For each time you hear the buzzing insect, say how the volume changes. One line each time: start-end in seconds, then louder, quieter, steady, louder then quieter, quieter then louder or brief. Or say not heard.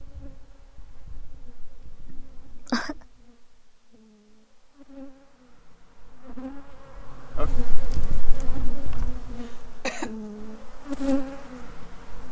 0.0-12.2 louder.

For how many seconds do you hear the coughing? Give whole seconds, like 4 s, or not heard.
2 s.